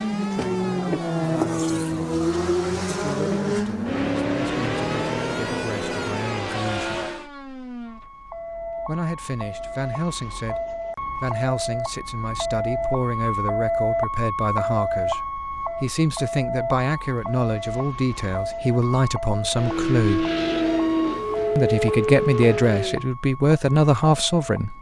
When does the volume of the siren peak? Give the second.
14 s.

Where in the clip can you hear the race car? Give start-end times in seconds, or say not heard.
0.0-7.3, 19.6-23.1.